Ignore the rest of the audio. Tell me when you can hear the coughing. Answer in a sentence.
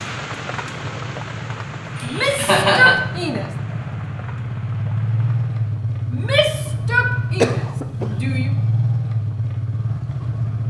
The coughing can be heard from 1.9 to 3.0 s and from 7.4 to 8.1 s.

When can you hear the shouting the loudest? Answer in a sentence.
The volume of the shouting peaks at 3 seconds.